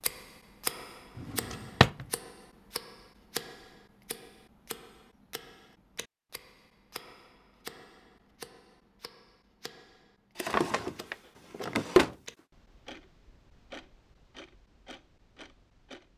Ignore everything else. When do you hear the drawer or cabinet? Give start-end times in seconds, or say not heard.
1.1-2.0, 10.3-12.2.